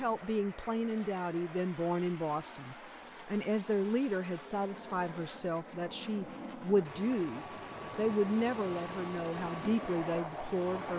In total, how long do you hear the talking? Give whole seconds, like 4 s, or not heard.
11 s.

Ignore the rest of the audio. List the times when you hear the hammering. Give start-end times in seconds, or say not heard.
not heard.